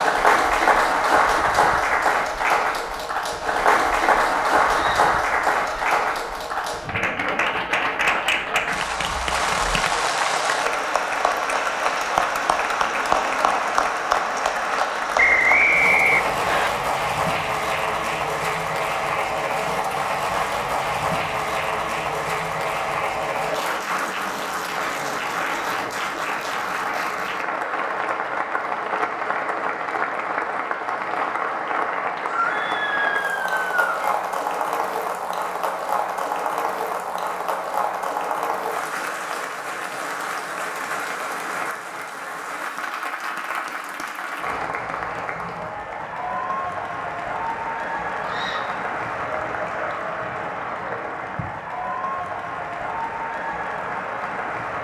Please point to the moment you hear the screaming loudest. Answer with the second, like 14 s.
33 s.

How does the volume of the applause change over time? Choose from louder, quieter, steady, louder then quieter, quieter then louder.
quieter.